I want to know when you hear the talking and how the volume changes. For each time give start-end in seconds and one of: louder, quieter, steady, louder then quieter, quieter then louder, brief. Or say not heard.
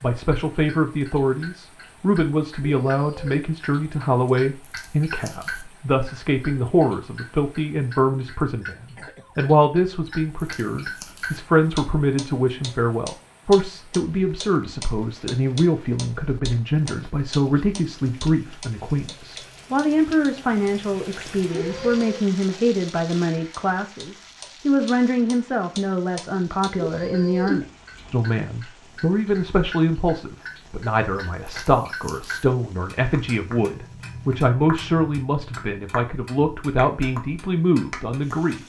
0.0-38.6 steady.